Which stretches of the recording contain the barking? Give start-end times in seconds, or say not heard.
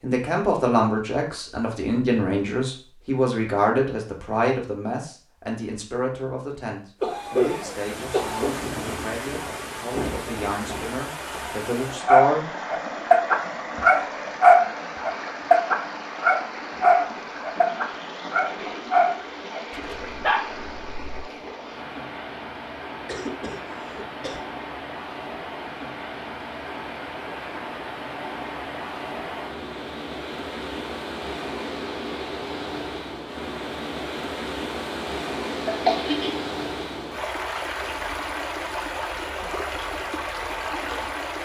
12.1-21.4.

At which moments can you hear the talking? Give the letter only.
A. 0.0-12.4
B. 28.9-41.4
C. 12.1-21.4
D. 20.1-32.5
A.